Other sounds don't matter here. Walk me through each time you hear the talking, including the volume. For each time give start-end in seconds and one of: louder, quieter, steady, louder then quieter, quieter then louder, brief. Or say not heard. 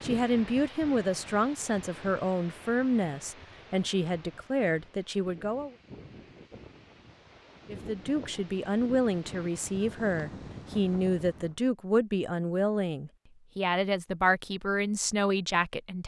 0.0-5.8 steady
7.7-16.0 steady.